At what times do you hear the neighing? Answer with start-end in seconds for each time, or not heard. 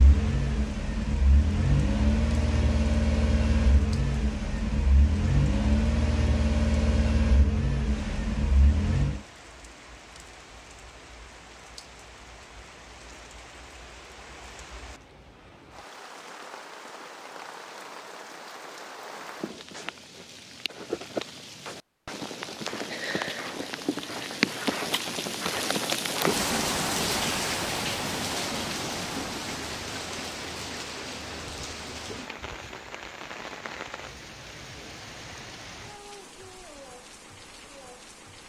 not heard.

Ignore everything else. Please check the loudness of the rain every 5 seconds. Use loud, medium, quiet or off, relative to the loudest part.
quiet, quiet, quiet, quiet, loud, loud, medium, quiet.